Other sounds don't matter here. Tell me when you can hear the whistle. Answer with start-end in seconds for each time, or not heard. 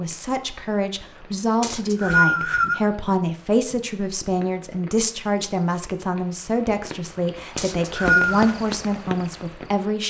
1.6-2.8, 7.5-8.6.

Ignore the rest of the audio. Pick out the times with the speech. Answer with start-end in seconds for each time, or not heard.
0.0-10.0.